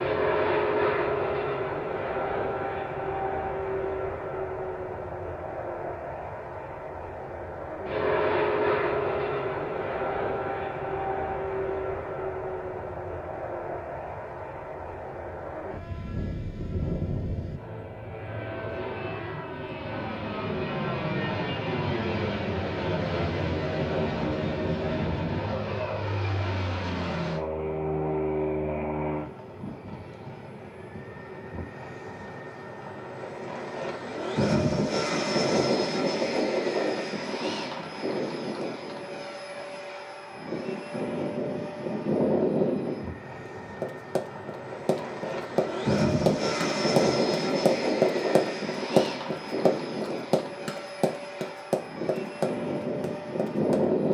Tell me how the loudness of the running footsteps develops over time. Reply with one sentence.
The loudness of the running footsteps goes up, then down.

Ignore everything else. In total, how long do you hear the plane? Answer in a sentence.
The plane can be heard for 54 seconds in total.